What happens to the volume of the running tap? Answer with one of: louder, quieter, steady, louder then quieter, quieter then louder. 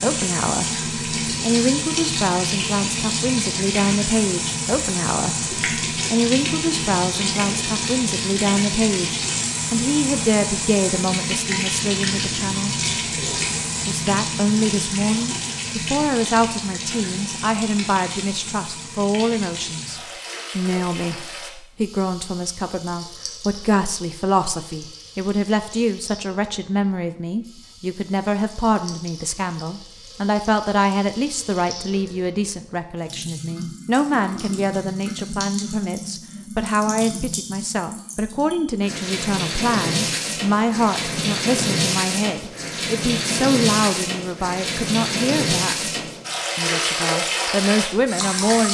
quieter then louder.